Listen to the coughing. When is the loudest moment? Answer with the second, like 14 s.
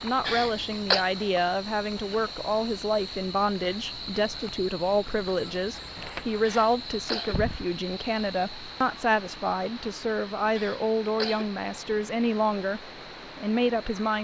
1 s.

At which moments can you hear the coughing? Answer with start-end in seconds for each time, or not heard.
0.2-1.1, 6.5-7.4, 10.6-11.5.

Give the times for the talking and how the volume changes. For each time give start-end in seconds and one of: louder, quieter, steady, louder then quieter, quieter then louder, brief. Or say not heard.
0.0-14.1 steady.